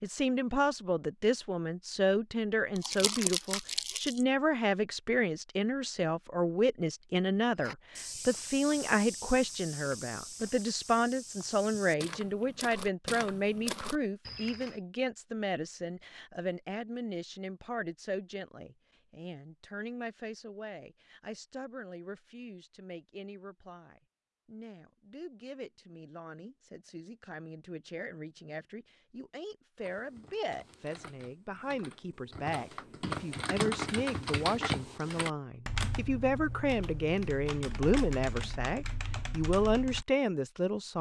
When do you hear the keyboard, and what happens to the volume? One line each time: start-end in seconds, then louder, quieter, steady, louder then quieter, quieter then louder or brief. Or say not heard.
29.8-40.0 louder then quieter.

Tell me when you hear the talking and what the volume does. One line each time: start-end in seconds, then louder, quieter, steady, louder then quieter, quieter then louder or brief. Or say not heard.
0.0-40.9 quieter then louder.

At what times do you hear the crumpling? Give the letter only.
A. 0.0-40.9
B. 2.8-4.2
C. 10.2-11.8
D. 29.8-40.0
B.